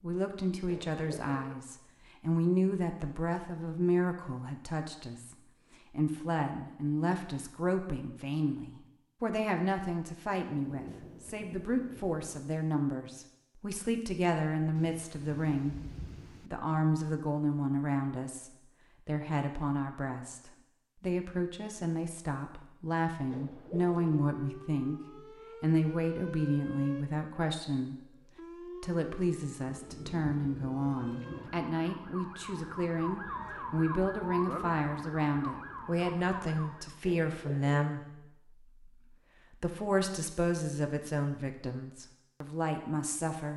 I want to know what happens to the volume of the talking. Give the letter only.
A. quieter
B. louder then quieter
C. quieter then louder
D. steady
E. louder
D.